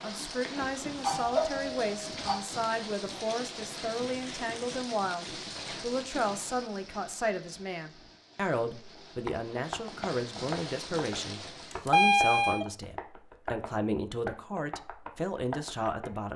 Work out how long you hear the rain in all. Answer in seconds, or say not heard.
12 s.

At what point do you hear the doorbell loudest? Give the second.
12 s.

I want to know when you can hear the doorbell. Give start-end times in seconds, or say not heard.
0.6-2.5, 11.7-12.7.